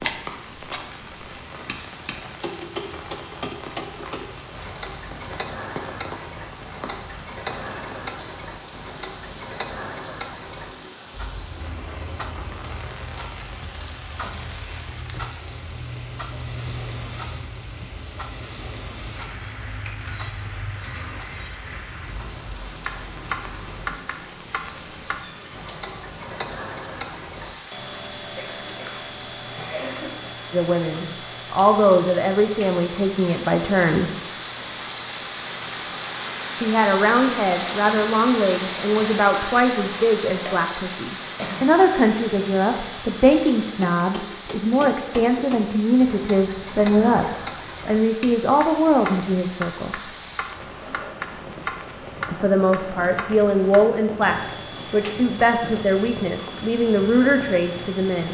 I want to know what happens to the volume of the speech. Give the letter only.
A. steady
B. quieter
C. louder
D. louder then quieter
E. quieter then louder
A.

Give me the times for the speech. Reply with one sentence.
You can hear the speech from 30.5 to 34.2 s, from 36.6 to 50.0 s and from 52.3 to 58.3 s.